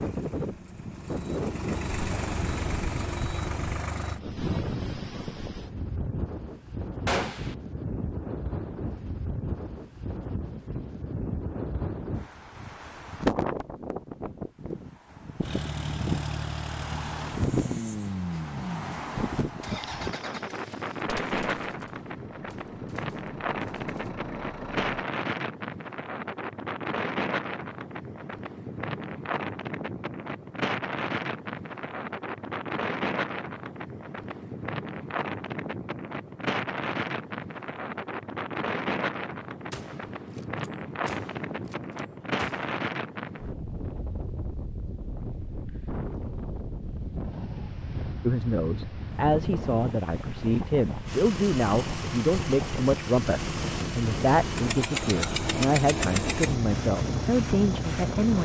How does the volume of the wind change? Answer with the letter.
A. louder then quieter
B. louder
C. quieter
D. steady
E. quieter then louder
D.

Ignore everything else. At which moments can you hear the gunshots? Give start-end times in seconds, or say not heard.
7.0-7.5, 21.1-24.1, 39.7-42.8.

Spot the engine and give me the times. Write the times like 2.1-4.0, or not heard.
0.0-4.2, 15.4-25.1, 51.0-58.4.